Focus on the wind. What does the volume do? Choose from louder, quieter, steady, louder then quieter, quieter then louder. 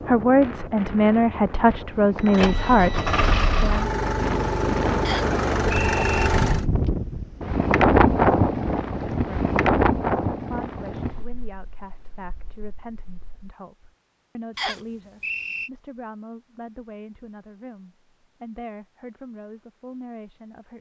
louder then quieter.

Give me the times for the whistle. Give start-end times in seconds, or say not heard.
5.0-6.3, 14.6-15.7.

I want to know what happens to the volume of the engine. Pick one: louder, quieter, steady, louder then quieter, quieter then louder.
steady.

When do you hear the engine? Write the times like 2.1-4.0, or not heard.
2.3-6.7.